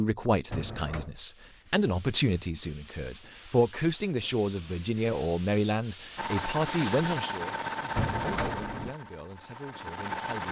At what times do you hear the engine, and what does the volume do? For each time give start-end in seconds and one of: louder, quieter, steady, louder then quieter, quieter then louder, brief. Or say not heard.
6.2-10.4 quieter.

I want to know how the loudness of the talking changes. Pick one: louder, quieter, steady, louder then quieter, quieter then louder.
quieter.